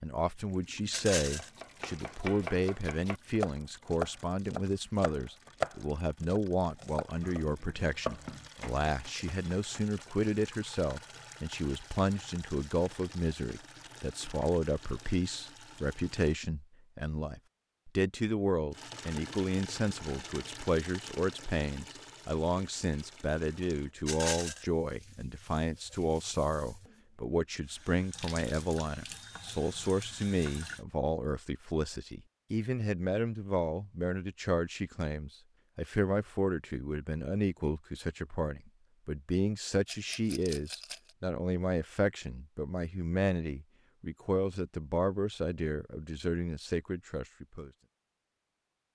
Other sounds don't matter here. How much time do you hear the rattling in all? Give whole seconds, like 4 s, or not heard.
2 s.